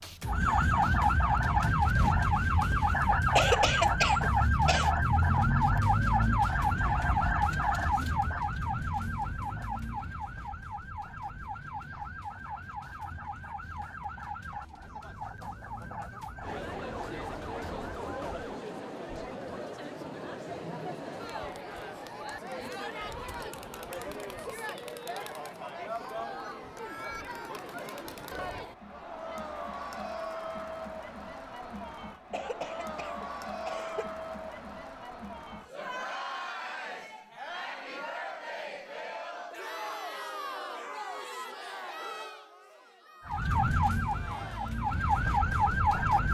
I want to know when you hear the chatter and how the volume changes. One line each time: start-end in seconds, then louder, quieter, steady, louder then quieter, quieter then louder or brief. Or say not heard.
16.4-46.0 steady.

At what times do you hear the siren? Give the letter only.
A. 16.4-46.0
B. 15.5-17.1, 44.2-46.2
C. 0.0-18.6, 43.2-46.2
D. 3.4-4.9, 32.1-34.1
C.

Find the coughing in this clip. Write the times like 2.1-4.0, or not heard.
3.4-4.9, 32.1-34.1.